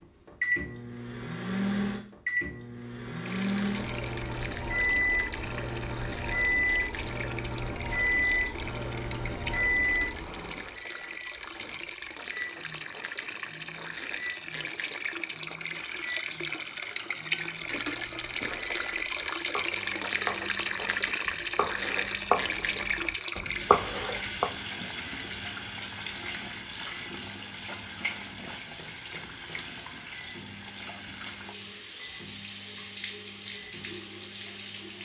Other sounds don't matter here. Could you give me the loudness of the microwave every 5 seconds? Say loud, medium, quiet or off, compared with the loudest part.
loud, loud, quiet, quiet, quiet, quiet, quiet.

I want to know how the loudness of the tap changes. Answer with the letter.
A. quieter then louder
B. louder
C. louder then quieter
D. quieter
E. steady
C.